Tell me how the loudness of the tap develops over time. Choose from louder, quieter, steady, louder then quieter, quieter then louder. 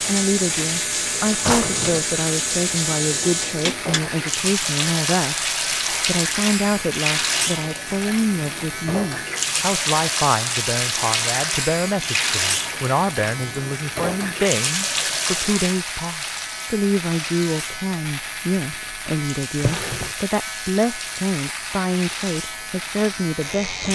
quieter.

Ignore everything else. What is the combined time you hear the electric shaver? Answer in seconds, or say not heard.
24 s.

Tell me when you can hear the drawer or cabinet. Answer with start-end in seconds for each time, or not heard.
1.4-2.0, 19.6-20.1.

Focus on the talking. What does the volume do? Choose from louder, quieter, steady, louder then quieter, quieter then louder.
steady.